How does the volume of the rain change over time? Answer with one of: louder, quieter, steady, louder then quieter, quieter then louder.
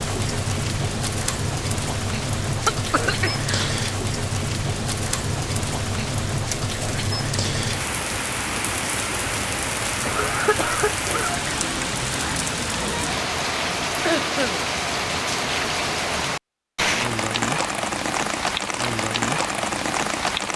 steady.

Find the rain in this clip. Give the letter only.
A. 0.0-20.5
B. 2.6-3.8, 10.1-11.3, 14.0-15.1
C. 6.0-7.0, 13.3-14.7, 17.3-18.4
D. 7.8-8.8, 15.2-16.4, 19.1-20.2
A.